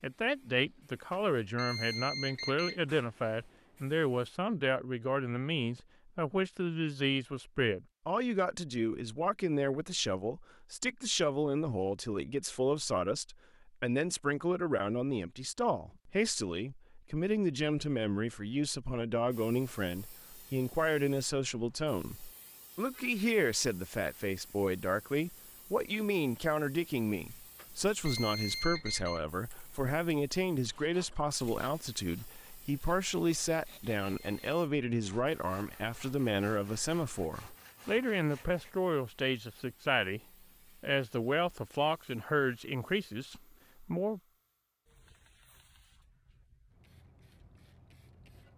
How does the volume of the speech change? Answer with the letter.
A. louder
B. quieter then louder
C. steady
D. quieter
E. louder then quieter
C.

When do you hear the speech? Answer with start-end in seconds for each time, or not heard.
0.0-40.2, 40.8-44.2.